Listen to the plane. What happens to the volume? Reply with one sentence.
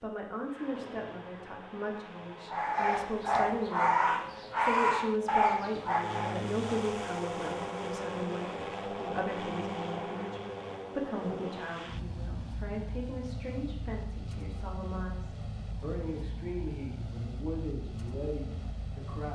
The loudness of the plane goes up, then down.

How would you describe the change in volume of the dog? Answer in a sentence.
The loudness of the dog stays about the same.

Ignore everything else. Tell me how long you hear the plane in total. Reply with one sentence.
The plane can be heard for 19 seconds in total.